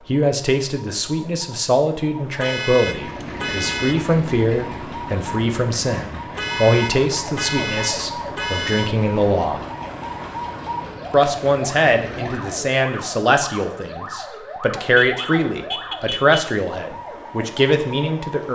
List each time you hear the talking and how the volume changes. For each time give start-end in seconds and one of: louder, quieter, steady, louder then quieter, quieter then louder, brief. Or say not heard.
0.1-9.7 steady
11.1-18.5 steady.